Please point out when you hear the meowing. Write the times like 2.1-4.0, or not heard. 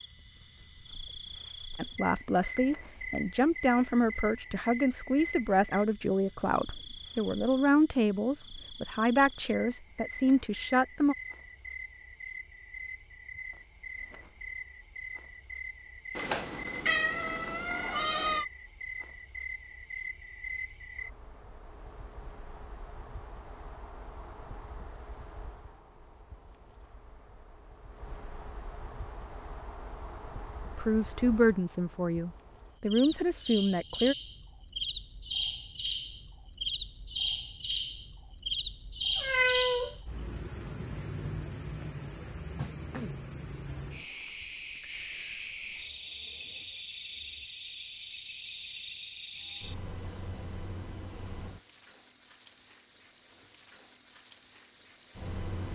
16.1-18.4, 39.1-40.0.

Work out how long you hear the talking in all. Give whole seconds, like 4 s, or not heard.
13 s.